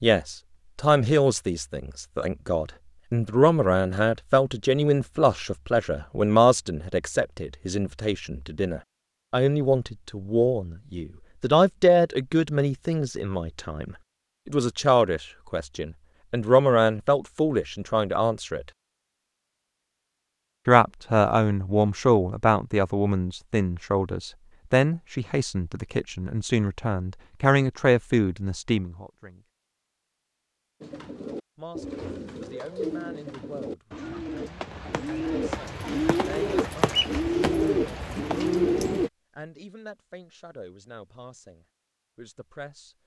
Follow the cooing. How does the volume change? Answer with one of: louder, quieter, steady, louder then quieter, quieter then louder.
louder.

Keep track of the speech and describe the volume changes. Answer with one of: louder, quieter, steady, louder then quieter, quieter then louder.
quieter.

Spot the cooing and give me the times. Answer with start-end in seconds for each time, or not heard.
30.8-39.1.